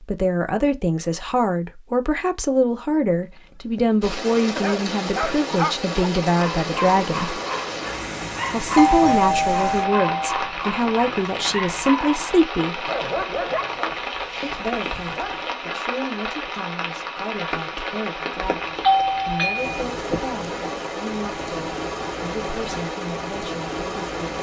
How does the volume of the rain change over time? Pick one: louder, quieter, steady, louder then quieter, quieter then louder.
steady.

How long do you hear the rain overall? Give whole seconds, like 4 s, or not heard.
20 s.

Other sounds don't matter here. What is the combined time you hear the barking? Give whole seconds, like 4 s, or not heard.
12 s.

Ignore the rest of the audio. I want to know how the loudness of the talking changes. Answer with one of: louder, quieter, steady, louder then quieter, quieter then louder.
quieter.